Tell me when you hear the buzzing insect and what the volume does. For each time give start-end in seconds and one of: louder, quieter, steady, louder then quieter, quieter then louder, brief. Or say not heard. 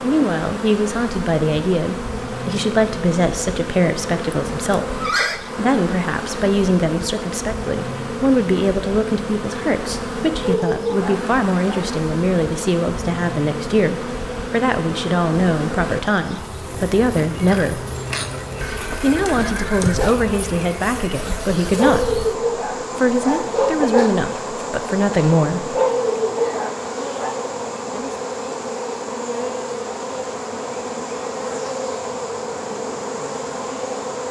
0.0-34.2 steady.